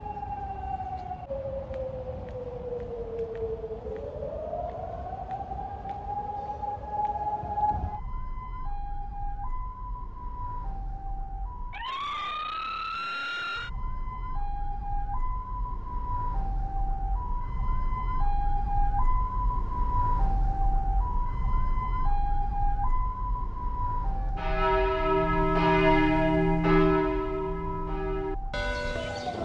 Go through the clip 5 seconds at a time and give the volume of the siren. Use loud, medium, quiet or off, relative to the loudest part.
loud, loud, loud, loud, loud, medium.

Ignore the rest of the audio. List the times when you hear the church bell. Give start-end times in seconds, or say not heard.
24.1-29.3.